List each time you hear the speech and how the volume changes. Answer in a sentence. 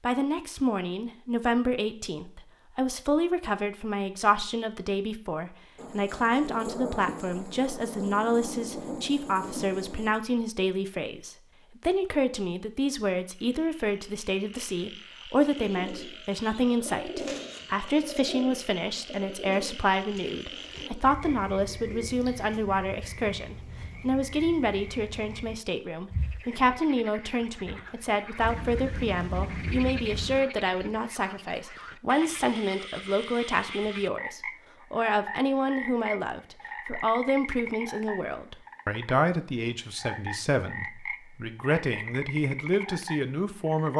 You can hear the speech from 0.0 to 43.9 s, at a steady volume.